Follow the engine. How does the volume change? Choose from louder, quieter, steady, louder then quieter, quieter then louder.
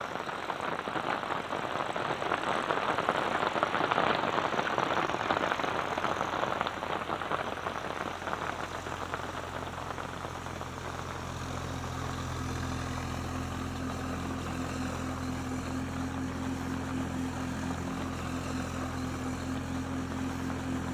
louder.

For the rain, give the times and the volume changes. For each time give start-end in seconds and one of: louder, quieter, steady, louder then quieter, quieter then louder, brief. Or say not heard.
0.0-20.8 quieter.